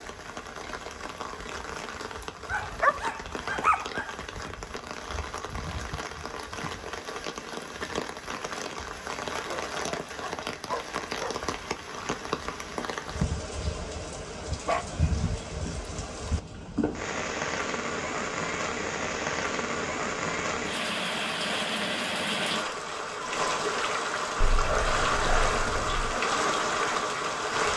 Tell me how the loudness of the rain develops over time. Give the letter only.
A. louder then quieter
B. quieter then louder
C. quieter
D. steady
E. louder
E.